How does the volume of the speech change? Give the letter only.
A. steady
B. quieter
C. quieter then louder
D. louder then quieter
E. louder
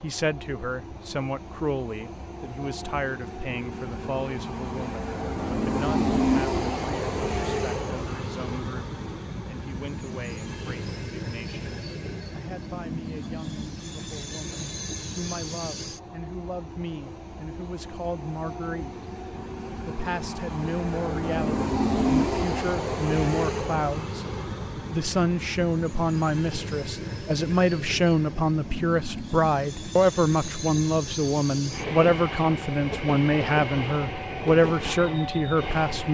C.